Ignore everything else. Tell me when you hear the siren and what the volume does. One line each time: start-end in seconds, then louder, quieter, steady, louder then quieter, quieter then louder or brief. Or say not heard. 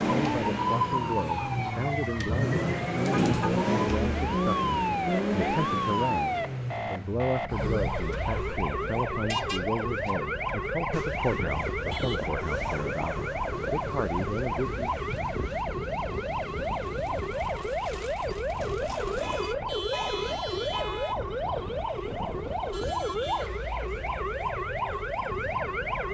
0.0-26.0 steady.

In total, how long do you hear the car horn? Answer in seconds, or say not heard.
3 s.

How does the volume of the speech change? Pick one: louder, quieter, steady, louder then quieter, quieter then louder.
steady.